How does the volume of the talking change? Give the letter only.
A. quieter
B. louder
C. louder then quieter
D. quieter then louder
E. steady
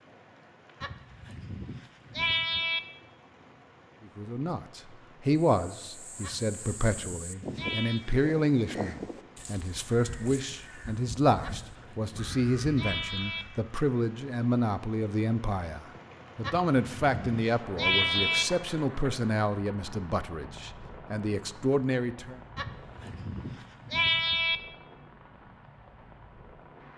E.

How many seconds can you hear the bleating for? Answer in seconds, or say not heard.
10 s.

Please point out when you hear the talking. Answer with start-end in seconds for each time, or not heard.
4.0-22.4.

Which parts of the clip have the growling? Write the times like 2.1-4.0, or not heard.
not heard.